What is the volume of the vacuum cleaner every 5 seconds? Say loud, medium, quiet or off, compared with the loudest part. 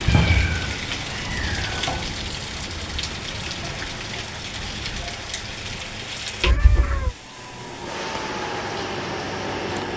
off, loud.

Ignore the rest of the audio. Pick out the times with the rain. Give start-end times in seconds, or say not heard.
0.0-9.9.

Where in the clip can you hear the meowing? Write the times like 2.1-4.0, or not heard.
0.1-2.0, 6.4-7.2.